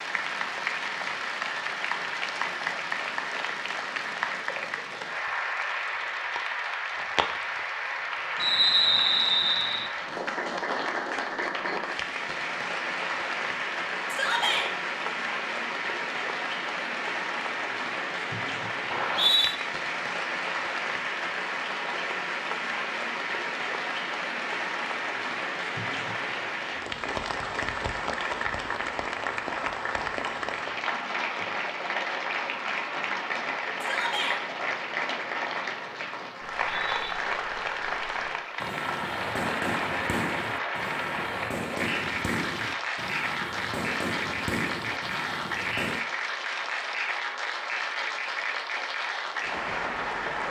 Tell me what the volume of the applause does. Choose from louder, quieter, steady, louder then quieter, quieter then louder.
steady.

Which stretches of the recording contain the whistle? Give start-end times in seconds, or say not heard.
8.3-9.9, 18.9-19.6, 36.4-37.1.